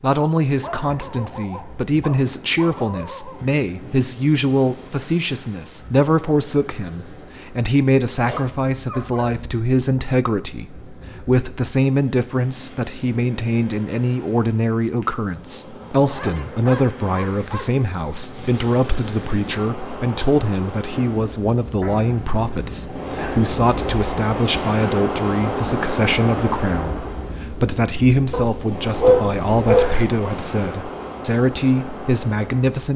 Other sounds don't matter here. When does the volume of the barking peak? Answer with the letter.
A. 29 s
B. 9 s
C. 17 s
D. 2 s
A.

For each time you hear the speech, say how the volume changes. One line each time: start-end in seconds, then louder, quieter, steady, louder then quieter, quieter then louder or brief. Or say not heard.
0.0-32.9 steady.